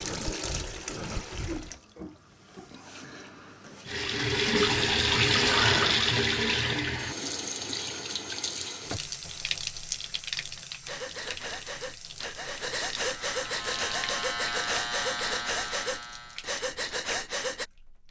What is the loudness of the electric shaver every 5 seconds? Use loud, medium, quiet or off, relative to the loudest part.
off, off, loud, loud.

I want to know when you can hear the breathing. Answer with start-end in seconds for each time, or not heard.
0.0-1.8, 10.8-17.6.